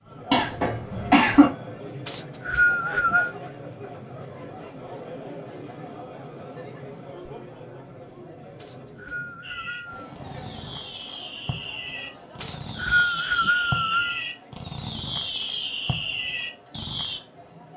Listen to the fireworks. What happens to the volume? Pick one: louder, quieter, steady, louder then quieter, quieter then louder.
louder.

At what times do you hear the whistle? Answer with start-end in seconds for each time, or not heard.
2.0-3.4, 8.6-10.1, 12.4-14.2.